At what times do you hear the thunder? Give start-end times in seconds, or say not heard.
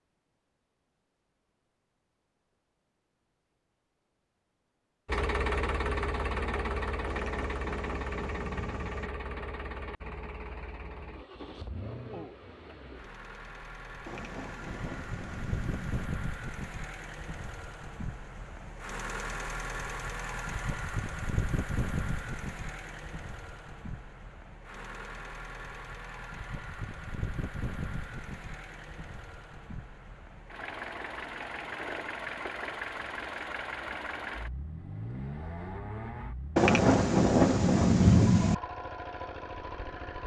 7.0-9.1, 14.1-16.1, 36.5-38.5.